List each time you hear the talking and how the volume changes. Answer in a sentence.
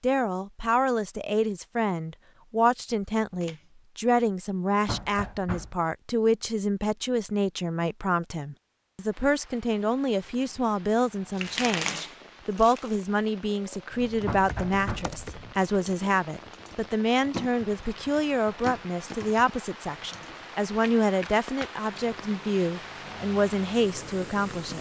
You can hear the talking from 0.0 to 24.7 s, at a steady volume.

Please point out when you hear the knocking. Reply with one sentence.
You can hear the knocking from 4.8 to 5.8 s and from 14.2 to 15.2 s.